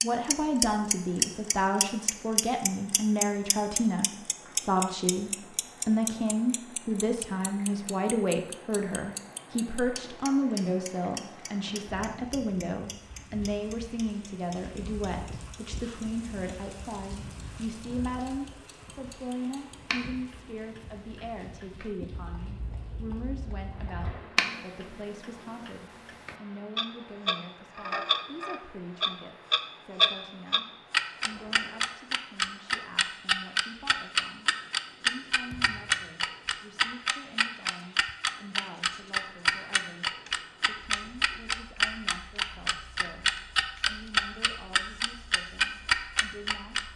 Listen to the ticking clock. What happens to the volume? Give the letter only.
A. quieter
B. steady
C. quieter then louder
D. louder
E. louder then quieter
C.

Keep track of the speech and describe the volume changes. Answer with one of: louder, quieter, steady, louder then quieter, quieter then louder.
quieter.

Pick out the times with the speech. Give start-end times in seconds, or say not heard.
0.0-46.9.